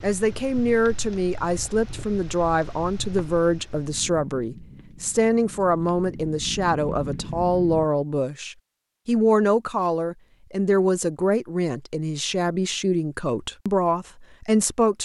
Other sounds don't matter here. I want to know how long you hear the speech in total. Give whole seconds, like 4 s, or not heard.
15 s.